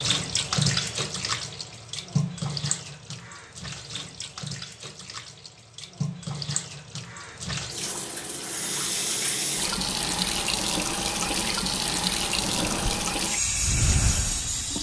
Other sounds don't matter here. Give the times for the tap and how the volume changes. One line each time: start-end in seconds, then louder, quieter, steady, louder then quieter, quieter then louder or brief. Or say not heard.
0.0-14.7 quieter then louder.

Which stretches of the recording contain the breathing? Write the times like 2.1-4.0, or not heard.
12.3-14.7.